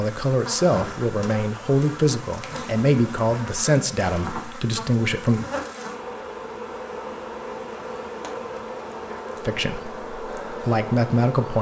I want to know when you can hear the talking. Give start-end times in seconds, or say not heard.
0.0-5.5, 9.4-11.5.